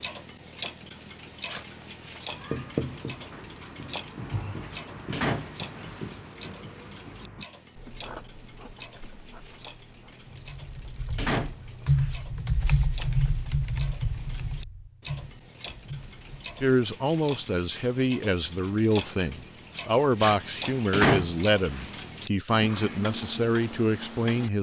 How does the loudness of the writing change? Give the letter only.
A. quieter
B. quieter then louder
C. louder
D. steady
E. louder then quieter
A.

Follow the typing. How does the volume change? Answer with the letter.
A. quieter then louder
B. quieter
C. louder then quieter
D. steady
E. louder
C.